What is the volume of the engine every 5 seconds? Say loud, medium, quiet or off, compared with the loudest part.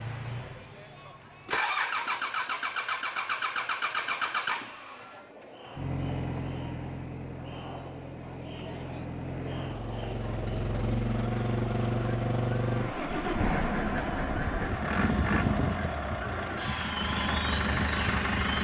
loud, medium, loud, loud.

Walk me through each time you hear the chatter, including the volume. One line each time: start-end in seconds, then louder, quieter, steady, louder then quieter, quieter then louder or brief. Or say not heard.
0.2-18.5 louder.